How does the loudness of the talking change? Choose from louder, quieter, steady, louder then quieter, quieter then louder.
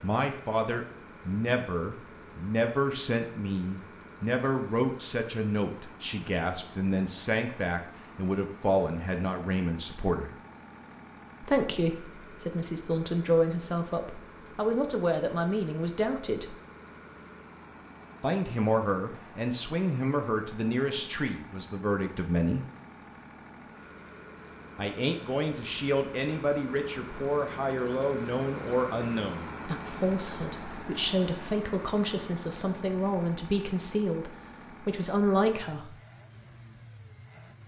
steady.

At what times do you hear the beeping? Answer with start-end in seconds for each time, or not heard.
not heard.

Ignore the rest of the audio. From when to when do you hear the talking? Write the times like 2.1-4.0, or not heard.
0.0-10.3, 11.4-16.6, 18.2-22.6, 24.8-36.0.